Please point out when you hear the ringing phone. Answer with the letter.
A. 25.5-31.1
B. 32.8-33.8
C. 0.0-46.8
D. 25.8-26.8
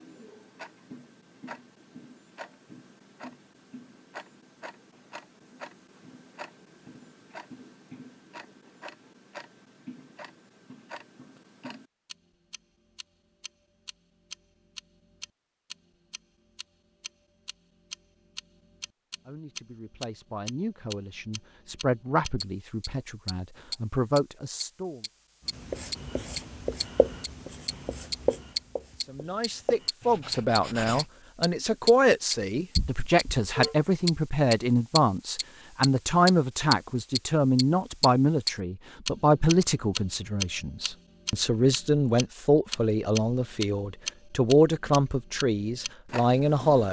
B.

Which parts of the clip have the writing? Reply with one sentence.
You can hear the writing from 25.5 to 31.1 s.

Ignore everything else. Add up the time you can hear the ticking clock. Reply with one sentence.
You can hear the ticking clock for 47 seconds altogether.